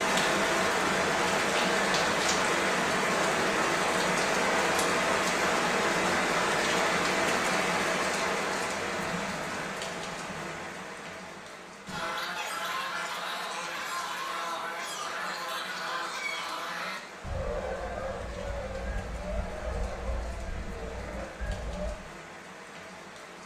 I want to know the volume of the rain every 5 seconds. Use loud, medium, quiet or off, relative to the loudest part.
loud, loud, quiet, quiet, quiet.